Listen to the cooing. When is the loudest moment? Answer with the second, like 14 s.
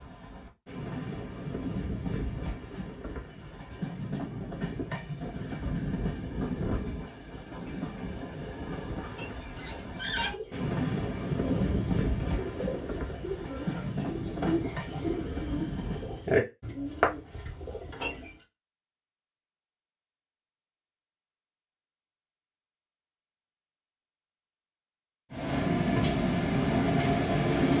16 s.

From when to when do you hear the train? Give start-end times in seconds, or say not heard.
0.0-16.2, 25.3-27.7.